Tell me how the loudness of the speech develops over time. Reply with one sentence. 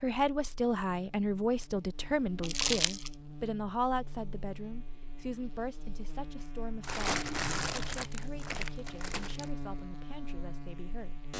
The volume of the speech goes down.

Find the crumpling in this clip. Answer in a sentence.
You can hear the crumpling from 2.4 to 3.1 s and from 6.8 to 9.5 s.